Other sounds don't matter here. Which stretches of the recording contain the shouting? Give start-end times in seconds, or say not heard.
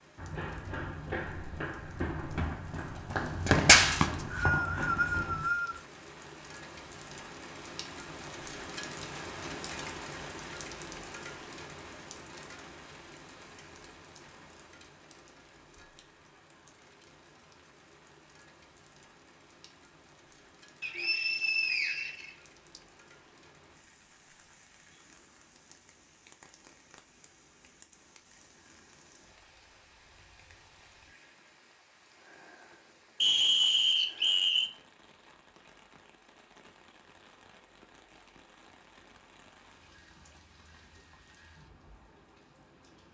not heard.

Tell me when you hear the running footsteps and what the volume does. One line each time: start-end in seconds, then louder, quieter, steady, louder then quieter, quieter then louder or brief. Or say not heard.
0.1-5.5 louder then quieter.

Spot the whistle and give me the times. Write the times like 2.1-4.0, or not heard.
3.9-5.8, 20.8-22.8, 33.2-34.7.